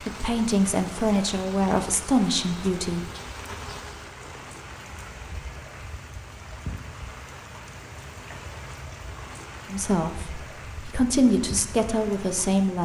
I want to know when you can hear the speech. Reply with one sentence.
The speech can be heard from 0.1 to 3.0 s and from 9.7 to 12.7 s.